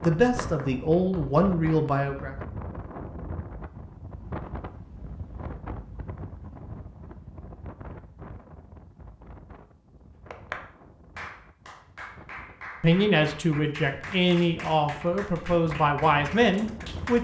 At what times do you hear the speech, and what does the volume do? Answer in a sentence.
You can hear the speech briefly from 0.0 to 2.4 s; and from 12.8 to 17.1 s, at a steady volume.